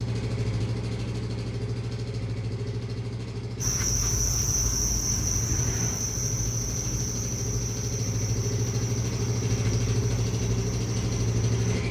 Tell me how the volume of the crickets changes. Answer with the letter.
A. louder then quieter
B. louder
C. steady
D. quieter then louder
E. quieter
E.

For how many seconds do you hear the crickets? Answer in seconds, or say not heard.
8 s.